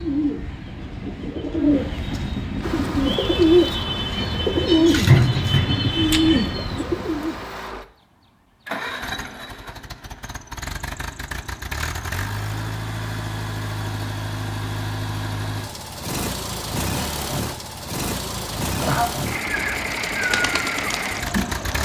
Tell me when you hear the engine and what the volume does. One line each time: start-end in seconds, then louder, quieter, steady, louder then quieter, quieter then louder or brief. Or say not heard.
2.6-21.8 louder.